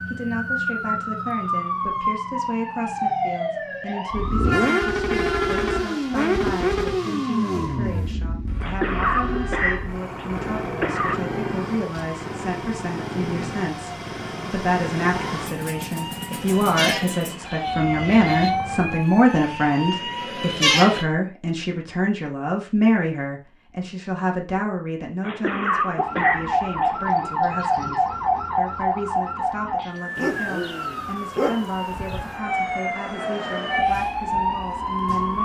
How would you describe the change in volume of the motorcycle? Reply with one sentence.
The loudness of the motorcycle goes down.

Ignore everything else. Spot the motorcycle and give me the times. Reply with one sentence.
You can hear the motorcycle from 4.1 to 19.0 s.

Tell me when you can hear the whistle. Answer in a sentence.
The whistle can't be heard in this clip.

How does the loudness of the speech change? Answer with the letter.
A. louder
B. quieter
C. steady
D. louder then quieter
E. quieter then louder
D.